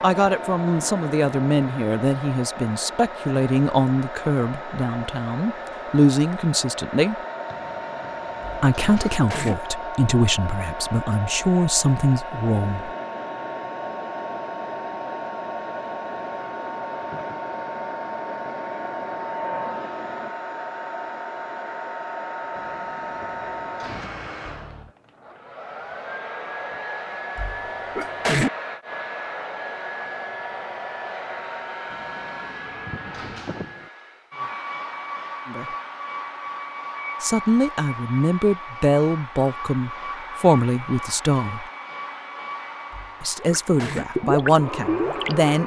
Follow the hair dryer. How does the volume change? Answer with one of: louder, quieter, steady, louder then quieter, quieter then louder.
steady.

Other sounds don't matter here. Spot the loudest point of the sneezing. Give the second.
28 s.